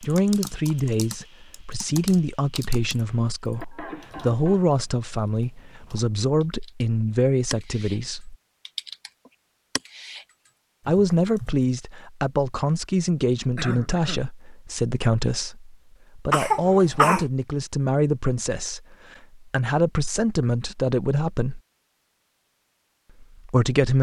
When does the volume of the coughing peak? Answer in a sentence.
The volume of the coughing peaks at 17 seconds.